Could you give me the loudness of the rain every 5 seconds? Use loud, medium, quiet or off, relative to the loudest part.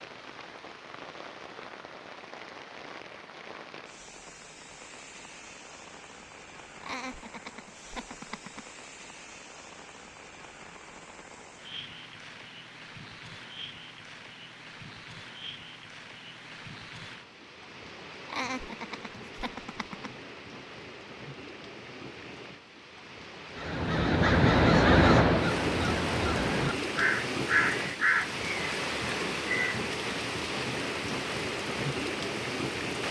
quiet, quiet, quiet, quiet, quiet, loud, loud.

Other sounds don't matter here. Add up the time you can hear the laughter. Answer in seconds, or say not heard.
4 s.